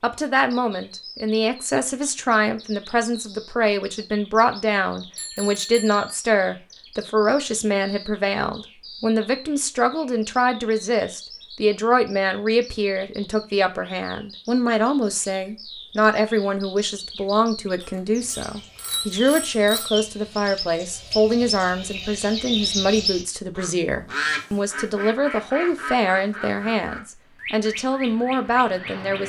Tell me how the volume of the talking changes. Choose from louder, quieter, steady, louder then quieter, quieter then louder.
steady.